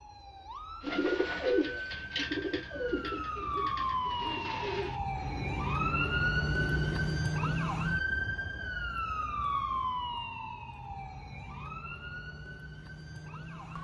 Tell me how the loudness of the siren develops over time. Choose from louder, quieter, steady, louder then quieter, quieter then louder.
louder then quieter.